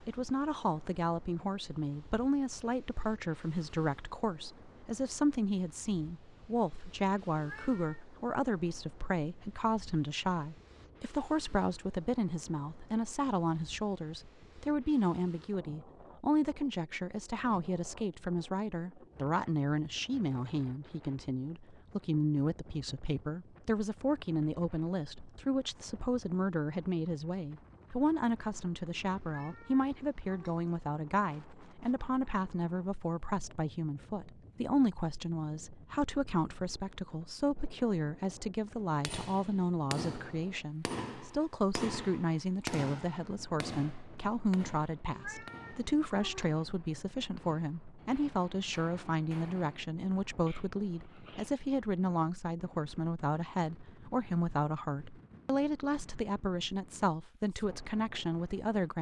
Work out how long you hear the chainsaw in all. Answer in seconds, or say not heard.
not heard.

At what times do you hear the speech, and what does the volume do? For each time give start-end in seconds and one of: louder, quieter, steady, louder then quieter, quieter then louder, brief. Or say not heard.
0.1-58.9 steady.